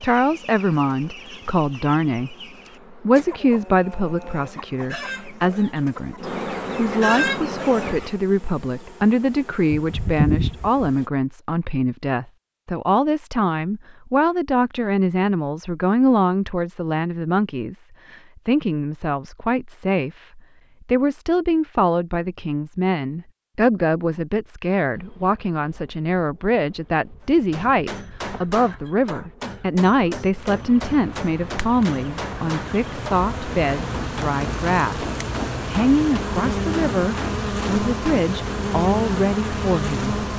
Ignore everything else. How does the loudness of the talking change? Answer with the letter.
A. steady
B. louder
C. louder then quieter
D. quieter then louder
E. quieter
A.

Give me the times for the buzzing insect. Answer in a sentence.
The buzzing insect can be heard from 0.0 to 11.1 s and from 24.9 to 40.3 s.